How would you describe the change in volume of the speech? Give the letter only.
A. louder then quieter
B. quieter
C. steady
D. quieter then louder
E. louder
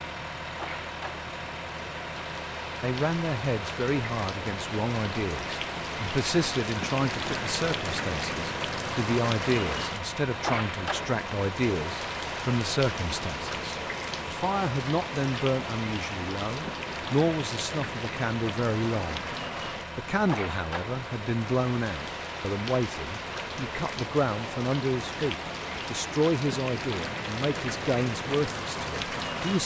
C.